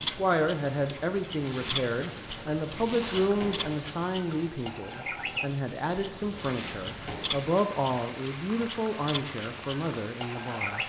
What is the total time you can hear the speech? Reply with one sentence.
You can hear the speech for 11 seconds altogether.